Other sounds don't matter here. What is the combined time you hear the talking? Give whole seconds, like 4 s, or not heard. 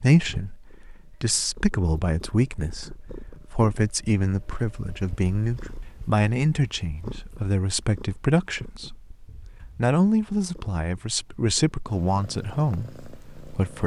13 s.